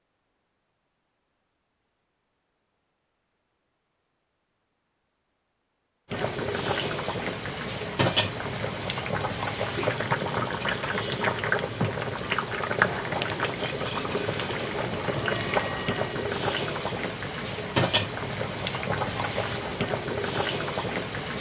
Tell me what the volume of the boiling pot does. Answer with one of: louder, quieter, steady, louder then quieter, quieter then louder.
steady.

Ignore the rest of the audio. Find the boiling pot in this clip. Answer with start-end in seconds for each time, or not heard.
6.1-21.3.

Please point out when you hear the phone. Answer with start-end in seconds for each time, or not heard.
15.1-16.2.